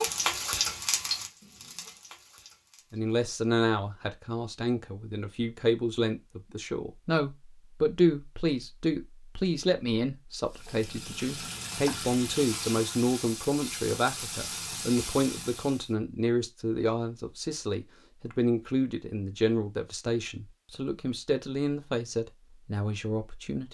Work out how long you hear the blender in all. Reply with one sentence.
The blender can't be heard in this clip.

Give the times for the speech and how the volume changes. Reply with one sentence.
The speech can be heard from 2.9 to 23.6 s, at a steady volume.